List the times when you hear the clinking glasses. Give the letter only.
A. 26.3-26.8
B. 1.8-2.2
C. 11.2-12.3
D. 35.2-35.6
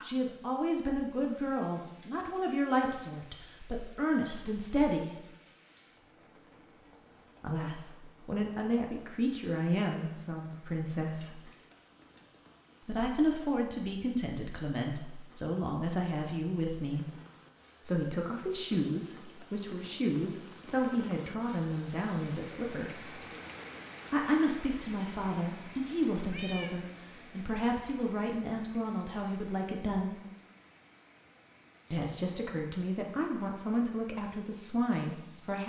C.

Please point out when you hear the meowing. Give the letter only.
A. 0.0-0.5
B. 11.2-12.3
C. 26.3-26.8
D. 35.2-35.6
C.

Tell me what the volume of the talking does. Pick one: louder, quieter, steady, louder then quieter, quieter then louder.
steady.